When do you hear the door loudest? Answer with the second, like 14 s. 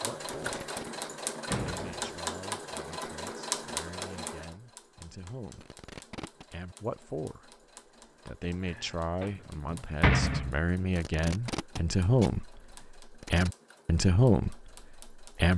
10 s.